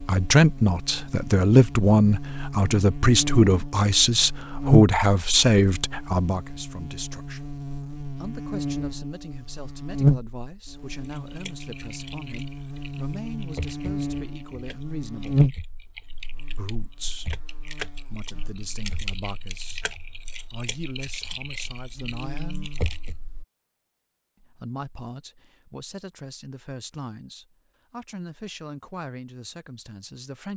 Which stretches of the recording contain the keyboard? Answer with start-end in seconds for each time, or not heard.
11.0-23.1.